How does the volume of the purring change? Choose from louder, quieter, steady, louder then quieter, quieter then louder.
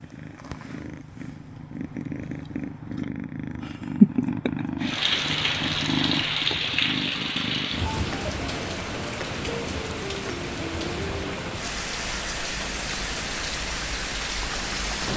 louder then quieter.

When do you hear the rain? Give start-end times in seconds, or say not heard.
4.8-15.1.